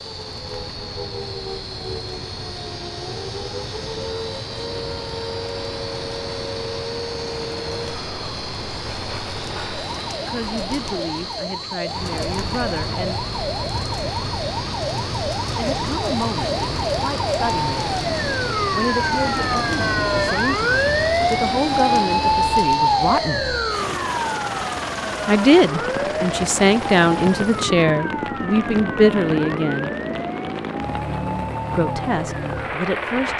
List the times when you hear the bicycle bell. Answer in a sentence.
The bicycle bell can't be heard in this clip.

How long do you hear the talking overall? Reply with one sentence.
The talking can be heard for 17 seconds in total.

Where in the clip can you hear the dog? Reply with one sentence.
The dog can't be heard in this clip.